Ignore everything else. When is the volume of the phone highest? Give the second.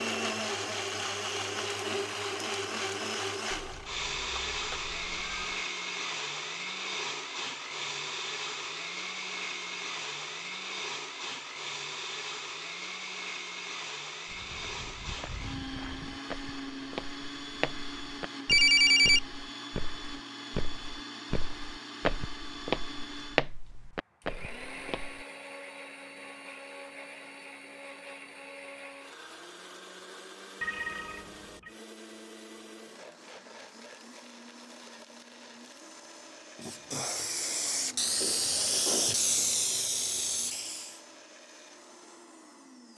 19 s.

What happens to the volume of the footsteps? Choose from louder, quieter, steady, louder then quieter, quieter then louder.
louder.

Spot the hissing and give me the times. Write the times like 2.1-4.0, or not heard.
36.5-41.0.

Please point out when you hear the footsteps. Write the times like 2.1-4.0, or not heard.
14.2-25.2.